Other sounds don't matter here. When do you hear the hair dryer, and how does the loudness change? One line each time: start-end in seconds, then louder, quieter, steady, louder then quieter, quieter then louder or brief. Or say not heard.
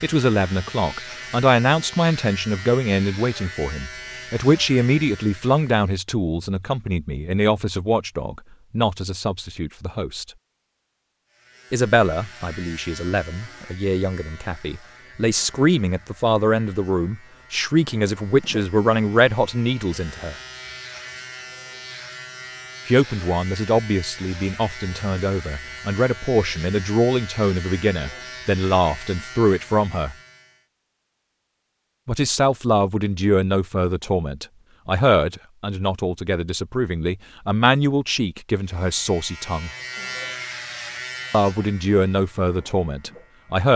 not heard.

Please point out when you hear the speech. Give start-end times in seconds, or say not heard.
0.0-10.2, 11.7-20.4, 22.9-30.1, 32.0-39.7, 41.3-43.7.